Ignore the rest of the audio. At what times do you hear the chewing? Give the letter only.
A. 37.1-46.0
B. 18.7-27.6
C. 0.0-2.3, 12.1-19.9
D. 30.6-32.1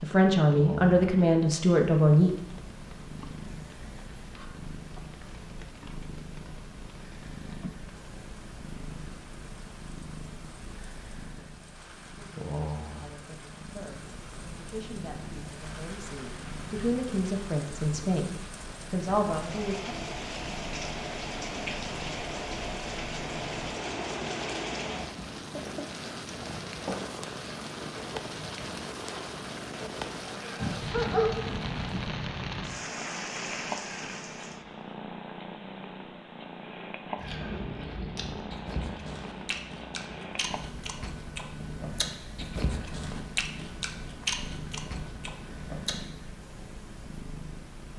A.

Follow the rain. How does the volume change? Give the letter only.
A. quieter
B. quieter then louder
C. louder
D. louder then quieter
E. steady
C.